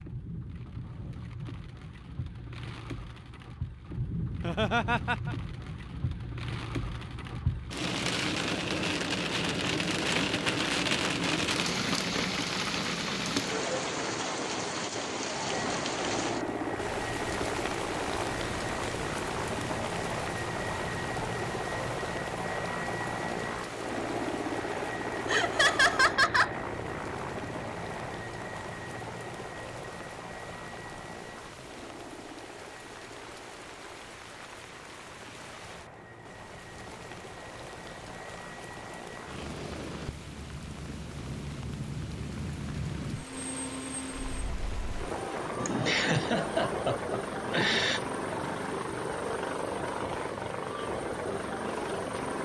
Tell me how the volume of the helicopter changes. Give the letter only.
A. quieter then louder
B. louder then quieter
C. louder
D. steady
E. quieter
A.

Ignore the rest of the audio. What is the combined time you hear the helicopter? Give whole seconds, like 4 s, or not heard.
37 s.